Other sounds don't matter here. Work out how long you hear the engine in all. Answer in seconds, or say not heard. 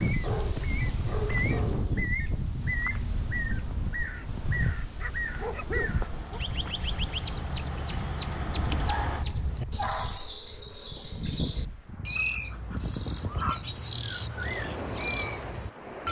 7 s.